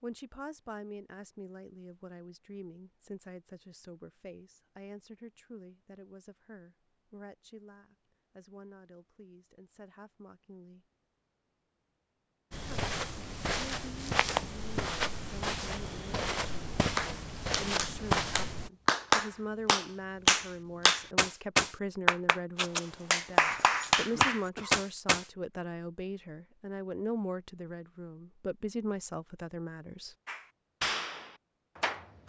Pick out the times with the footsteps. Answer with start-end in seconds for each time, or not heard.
12.5-18.7.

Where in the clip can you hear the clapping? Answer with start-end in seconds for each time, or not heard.
16.9-25.2, 30.2-32.2.